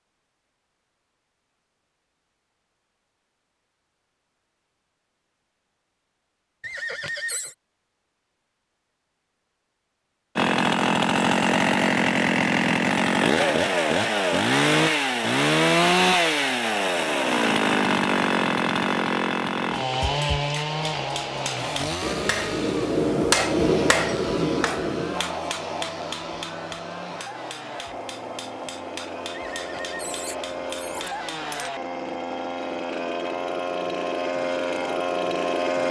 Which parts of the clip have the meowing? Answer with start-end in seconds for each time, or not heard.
not heard.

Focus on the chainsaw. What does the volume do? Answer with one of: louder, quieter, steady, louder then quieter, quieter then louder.
quieter then louder.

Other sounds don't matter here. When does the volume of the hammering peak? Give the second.
23 s.